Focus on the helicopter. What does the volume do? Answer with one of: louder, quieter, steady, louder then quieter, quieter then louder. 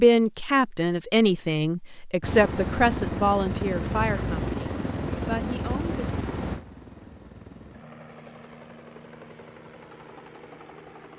quieter.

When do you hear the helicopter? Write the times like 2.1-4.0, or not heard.
2.2-11.1.